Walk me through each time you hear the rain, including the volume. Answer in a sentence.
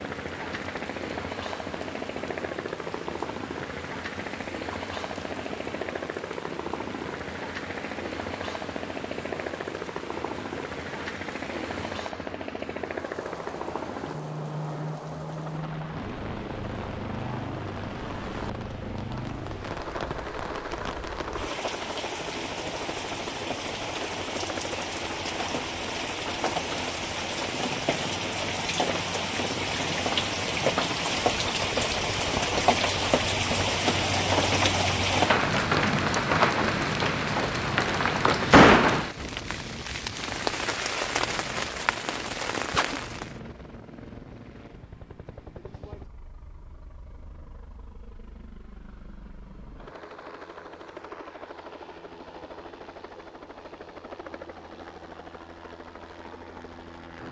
The rain can be heard from 0.0 to 43.4 s, getting louder.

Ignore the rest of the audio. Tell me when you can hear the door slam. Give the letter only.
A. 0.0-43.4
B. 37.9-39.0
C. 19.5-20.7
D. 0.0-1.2
B.